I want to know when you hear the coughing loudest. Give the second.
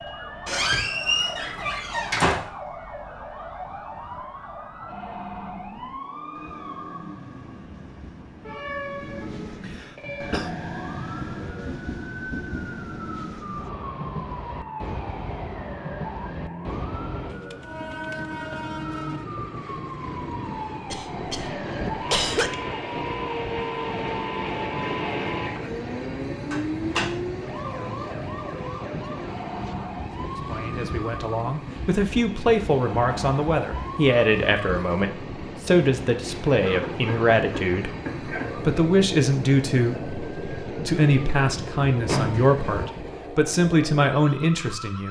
22 s.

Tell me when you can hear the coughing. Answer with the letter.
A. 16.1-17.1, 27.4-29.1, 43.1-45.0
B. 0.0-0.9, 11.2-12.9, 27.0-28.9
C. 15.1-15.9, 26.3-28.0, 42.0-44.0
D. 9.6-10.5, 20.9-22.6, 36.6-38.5
D.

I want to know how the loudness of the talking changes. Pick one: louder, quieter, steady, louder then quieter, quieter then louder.
steady.